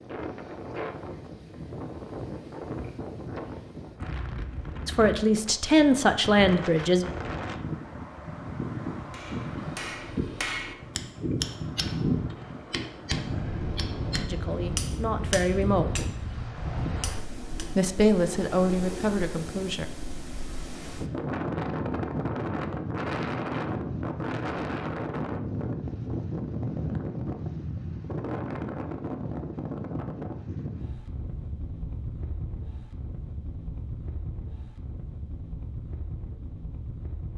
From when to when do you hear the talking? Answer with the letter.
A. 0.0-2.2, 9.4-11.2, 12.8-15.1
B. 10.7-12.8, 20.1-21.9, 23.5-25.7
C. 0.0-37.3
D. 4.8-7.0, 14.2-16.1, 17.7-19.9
D.